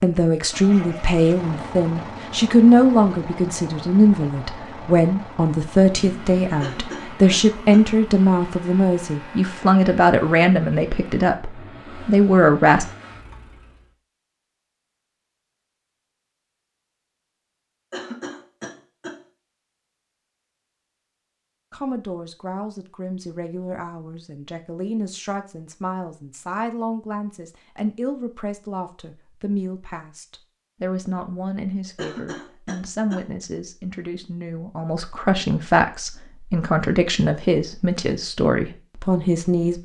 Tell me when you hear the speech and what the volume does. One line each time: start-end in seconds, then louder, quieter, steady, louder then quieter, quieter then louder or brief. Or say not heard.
0.0-12.8 steady
21.7-39.8 louder.